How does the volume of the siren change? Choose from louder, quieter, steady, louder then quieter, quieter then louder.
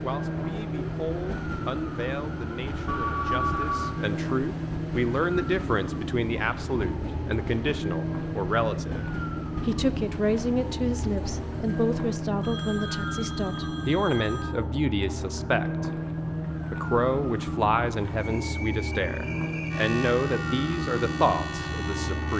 steady.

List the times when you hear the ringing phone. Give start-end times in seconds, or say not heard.
2.9-3.9, 12.4-14.4.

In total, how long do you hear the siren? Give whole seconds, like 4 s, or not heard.
22 s.